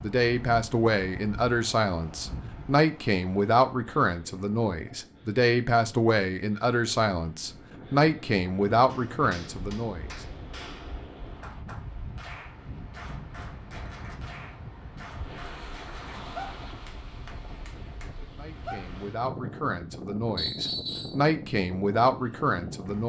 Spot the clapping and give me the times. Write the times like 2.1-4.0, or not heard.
8.8-18.9.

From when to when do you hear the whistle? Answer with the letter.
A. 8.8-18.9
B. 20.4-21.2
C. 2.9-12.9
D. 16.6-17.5
B.